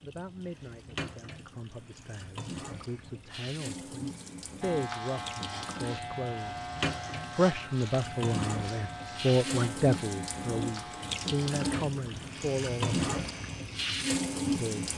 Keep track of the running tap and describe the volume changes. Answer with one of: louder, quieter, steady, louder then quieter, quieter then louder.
louder.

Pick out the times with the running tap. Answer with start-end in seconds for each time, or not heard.
0.0-14.9.